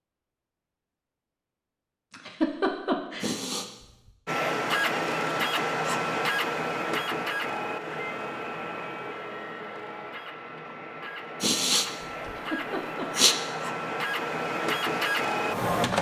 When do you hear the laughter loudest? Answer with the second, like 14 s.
3 s.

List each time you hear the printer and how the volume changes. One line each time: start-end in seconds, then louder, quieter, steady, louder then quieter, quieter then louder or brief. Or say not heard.
4.2-15.9 quieter then louder.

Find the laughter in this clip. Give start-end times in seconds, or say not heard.
2.1-3.3, 12.2-13.2.